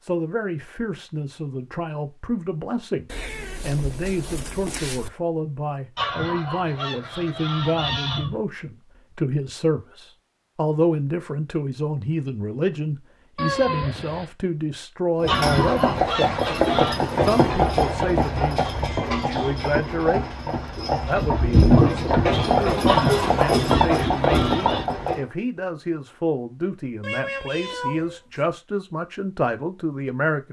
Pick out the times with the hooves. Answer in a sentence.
The hooves can be heard from 15.2 to 25.2 s.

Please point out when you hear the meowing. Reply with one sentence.
You can hear the meowing from 3.0 to 5.1 s, from 13.3 to 14.3 s and from 27.0 to 28.4 s.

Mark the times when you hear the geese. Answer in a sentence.
You can hear the geese from 6.0 to 8.4 s, from 15.2 to 17.0 s and from 22.9 to 24.9 s.